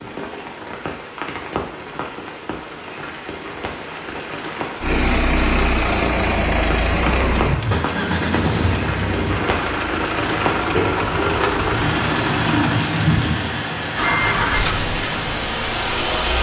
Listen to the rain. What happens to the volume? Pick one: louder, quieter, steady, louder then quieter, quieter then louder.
louder.